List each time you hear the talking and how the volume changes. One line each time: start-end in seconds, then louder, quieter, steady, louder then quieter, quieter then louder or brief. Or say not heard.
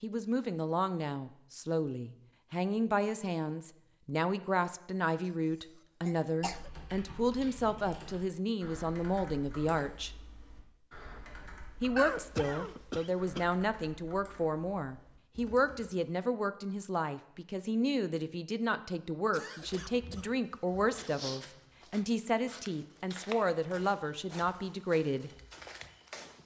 0.0-10.1 steady
11.8-25.3 steady.